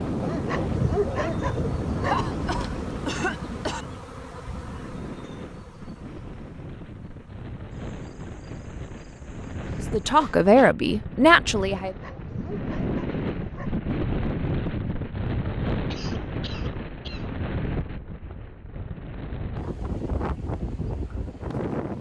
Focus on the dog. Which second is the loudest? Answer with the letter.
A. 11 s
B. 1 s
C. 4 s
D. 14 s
B.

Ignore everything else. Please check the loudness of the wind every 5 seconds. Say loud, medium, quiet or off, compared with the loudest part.
loud, medium, loud, loud, loud.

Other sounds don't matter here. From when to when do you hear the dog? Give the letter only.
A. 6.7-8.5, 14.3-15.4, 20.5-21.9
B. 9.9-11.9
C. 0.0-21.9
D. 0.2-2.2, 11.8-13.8
D.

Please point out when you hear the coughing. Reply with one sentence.
The coughing can be heard from 2.0 to 3.9 s, from 9.7 to 10.8 s and from 15.8 to 17.3 s.